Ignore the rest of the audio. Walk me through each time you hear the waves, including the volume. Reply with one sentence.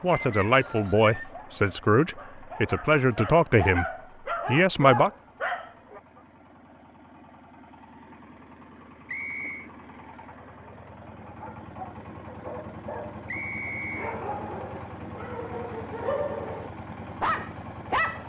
You can't hear the waves here.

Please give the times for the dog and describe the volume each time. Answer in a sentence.
You can hear the dog from 0.1 to 6.2 s, getting louder; and from 11.2 to 18.2 s, getting louder.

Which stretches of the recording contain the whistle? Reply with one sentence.
The whistle can be heard from 0.1 to 1.3 s, from 9.1 to 9.7 s and from 13.2 to 14.2 s.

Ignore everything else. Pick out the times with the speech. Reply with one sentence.
You can hear the speech from 0.0 to 3.9 s and from 4.5 to 5.1 s.